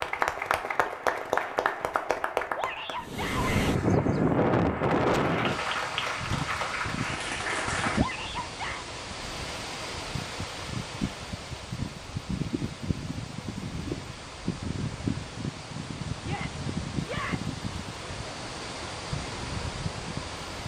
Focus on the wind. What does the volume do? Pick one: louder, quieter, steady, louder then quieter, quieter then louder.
quieter.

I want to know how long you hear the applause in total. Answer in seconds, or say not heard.
8 s.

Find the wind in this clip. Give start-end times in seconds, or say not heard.
3.0-20.6.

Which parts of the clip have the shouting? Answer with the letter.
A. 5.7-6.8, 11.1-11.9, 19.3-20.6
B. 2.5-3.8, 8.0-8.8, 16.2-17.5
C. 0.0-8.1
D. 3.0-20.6
B.